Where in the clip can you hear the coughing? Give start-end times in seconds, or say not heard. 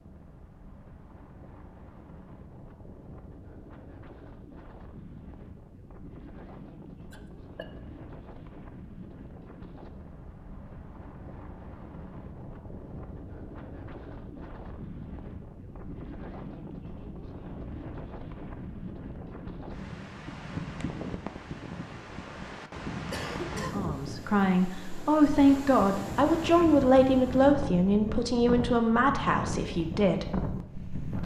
7.1-7.7, 23.1-23.9.